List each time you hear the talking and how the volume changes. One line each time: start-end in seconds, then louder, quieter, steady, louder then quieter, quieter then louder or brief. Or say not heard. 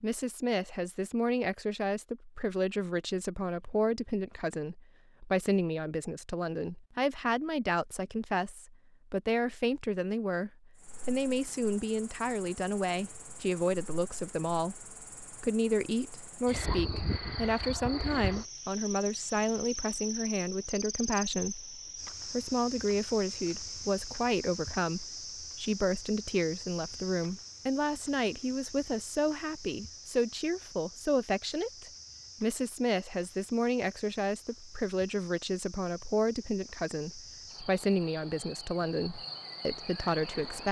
0.0-40.6 steady.